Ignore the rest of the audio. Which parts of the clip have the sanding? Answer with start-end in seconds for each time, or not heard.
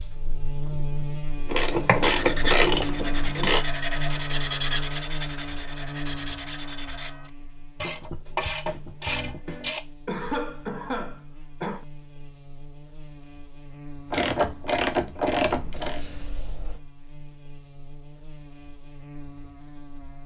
2.0-7.3.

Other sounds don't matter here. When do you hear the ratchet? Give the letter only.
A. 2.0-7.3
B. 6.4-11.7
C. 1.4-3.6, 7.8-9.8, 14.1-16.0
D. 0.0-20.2
C.